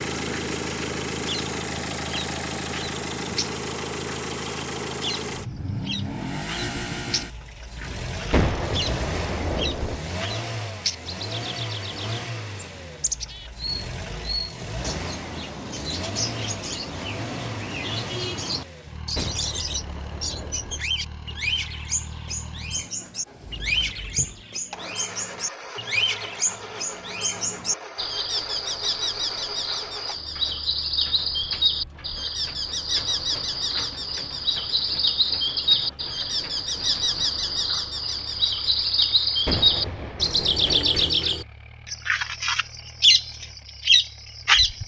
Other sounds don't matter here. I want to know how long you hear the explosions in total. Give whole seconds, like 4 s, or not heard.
5 s.